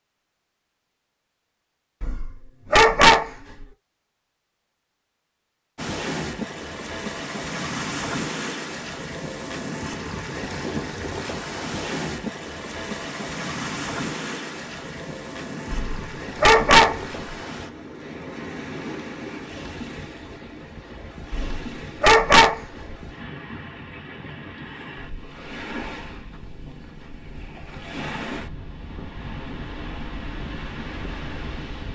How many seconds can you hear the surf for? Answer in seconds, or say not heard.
26 s.